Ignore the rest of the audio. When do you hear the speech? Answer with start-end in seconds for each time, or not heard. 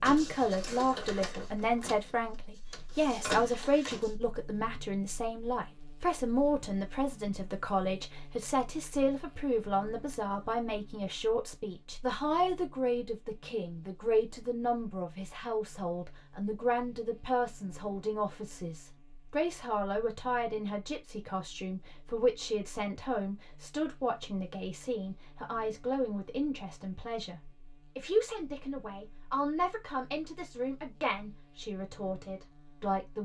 0.0-33.1.